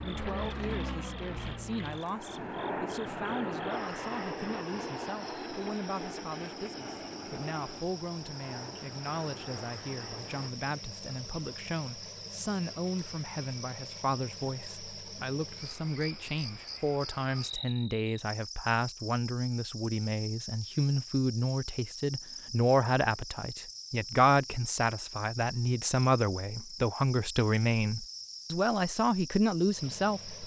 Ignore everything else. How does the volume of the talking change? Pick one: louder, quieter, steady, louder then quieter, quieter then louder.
louder.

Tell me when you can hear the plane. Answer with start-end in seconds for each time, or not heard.
0.0-10.5.